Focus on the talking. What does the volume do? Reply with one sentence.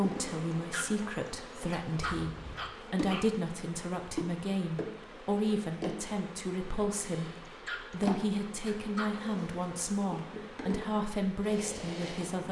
The volume of the talking stays about the same.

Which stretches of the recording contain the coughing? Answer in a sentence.
You can't hear the coughing here.